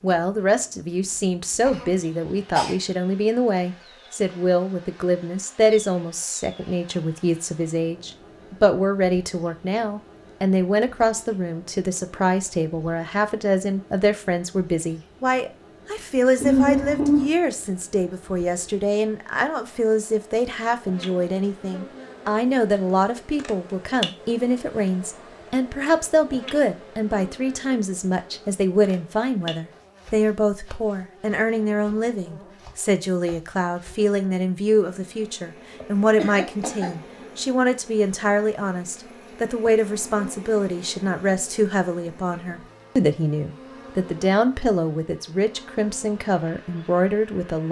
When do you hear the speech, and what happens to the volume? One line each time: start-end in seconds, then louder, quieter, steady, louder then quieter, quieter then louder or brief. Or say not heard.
0.0-47.6 steady.